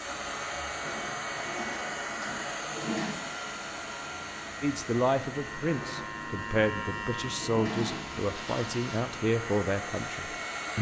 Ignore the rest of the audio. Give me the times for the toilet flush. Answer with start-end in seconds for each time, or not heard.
2.5-3.1, 7.2-9.0.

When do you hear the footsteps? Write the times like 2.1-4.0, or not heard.
not heard.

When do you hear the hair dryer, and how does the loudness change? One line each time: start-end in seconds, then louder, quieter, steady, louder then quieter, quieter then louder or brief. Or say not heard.
0.0-10.7 quieter then louder.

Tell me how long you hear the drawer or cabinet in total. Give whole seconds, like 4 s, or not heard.
2 s.